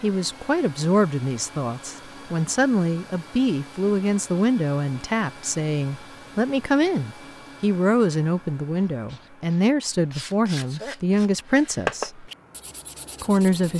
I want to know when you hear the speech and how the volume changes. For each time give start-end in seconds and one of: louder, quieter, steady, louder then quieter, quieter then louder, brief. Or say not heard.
0.0-12.3 steady
13.2-13.7 brief.